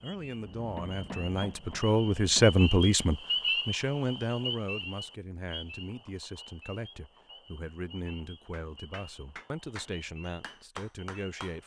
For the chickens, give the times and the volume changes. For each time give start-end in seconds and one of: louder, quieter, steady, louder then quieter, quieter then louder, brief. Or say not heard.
not heard.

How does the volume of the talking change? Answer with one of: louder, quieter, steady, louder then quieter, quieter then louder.
quieter.